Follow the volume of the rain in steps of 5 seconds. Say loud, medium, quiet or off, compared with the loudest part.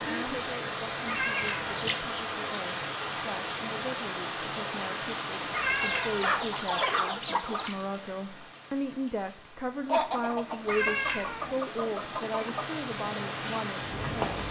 loud, medium, loud.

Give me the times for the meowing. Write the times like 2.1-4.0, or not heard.
1.1-1.8, 5.5-6.4, 10.7-11.6.